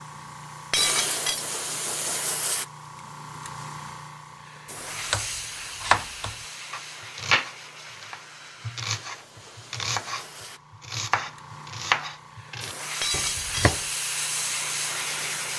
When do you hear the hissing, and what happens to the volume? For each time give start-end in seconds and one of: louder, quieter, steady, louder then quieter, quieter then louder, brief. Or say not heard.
0.0-15.5 quieter then louder.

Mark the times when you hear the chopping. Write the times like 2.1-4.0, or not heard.
5.1-13.8.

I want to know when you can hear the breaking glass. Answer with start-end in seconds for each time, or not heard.
0.7-1.4, 13.0-13.8.